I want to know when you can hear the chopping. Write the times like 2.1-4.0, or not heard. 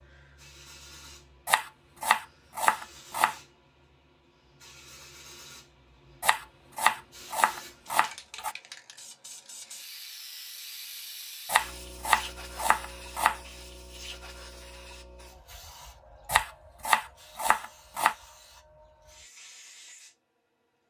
1.4-3.4, 6.2-8.6, 11.4-13.4, 16.2-18.1.